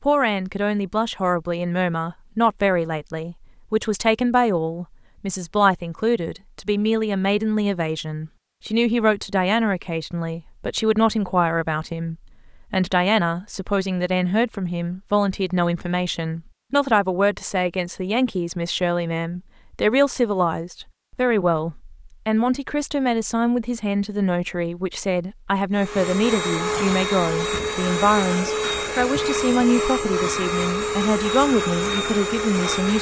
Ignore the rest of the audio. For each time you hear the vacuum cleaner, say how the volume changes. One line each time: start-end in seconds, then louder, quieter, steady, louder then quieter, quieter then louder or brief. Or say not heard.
25.7-32.9 steady.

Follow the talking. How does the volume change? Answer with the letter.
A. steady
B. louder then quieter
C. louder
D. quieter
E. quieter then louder
A.